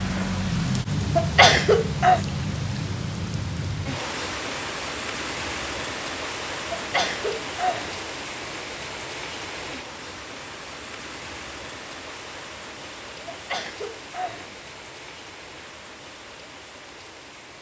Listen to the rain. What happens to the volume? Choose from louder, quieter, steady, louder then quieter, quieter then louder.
quieter.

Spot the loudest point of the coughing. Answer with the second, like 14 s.
2 s.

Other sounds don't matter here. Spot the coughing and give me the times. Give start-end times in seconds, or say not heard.
1.1-2.2, 6.7-8.0, 13.2-14.6.